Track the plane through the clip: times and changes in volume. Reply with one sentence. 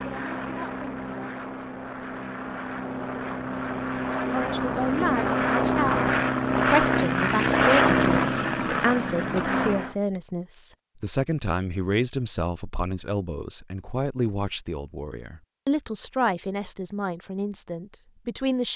The plane can be heard from 0.0 to 9.9 s, getting louder.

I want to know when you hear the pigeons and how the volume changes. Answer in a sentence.
You can't hear the pigeons here.